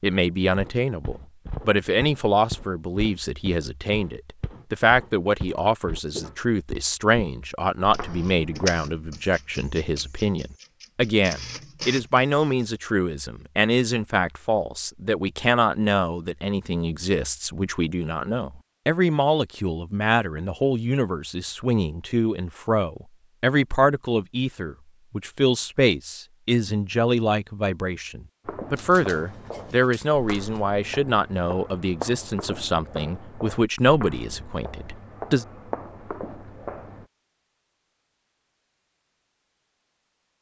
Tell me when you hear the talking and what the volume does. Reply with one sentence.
You can hear the talking from 0.0 to 35.5 s, at a steady volume.